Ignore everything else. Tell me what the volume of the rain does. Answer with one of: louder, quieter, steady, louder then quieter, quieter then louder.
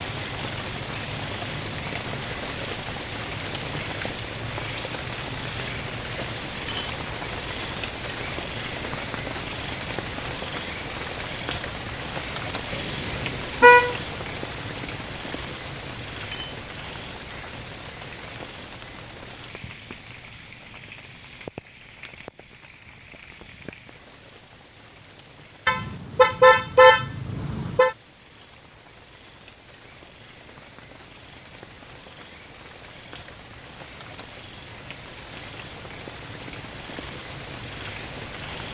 quieter then louder.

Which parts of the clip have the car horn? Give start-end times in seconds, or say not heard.
12.7-13.9, 25.6-27.9.